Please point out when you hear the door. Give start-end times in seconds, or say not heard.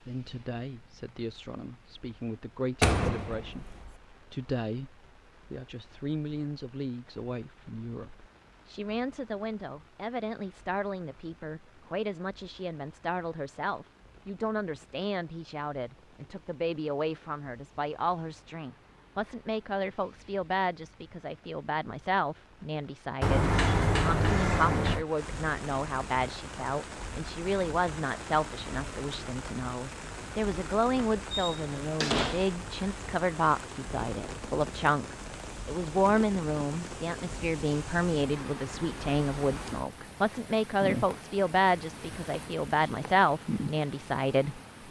2.8-3.9, 23.2-25.1, 31.2-32.5.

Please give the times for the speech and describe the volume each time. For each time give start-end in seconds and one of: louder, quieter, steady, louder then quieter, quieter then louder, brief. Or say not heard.
0.0-44.6 louder.